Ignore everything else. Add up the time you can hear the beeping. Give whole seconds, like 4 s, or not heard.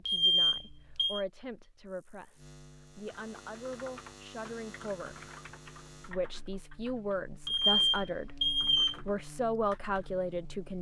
3 s.